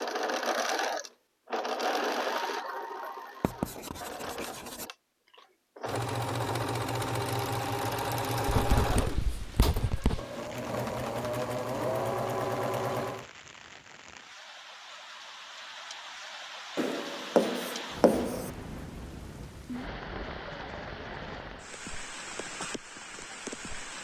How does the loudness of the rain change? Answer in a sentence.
The loudness of the rain goes up.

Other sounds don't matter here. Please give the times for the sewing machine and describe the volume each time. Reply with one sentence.
You can hear the sewing machine from 0.0 to 13.2 s, getting quieter then louder.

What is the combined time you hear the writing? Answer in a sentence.
You can hear the writing for 5 seconds altogether.